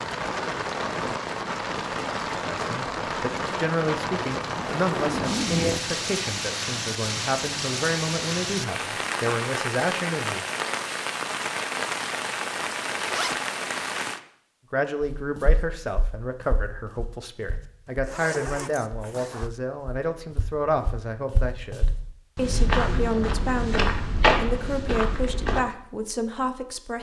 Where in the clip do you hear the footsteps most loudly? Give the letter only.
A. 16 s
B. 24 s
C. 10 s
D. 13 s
B.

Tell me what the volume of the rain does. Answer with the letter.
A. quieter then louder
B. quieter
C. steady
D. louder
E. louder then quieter
C.